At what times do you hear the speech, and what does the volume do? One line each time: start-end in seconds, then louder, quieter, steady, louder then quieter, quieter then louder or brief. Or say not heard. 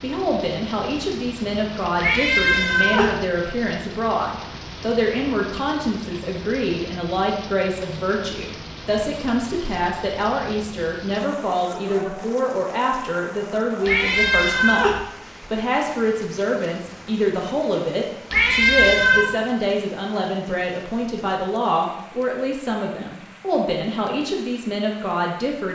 0.0-25.7 steady.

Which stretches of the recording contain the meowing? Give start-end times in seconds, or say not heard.
2.0-3.1, 13.8-15.0, 18.3-19.3.